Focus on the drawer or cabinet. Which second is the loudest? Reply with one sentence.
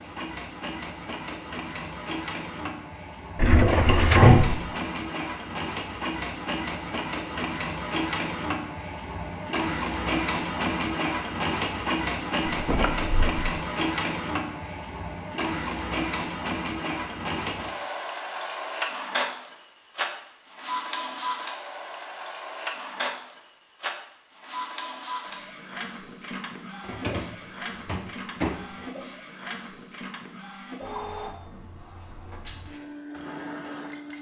The loudest moment of the drawer or cabinet is at 4 seconds.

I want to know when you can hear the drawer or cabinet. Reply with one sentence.
The drawer or cabinet can be heard from 3.4 to 4.7 s, from 12.5 to 13.4 s and from 26.8 to 28.9 s.